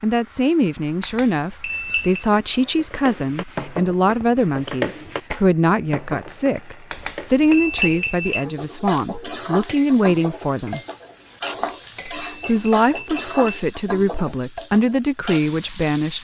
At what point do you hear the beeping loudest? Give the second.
8 s.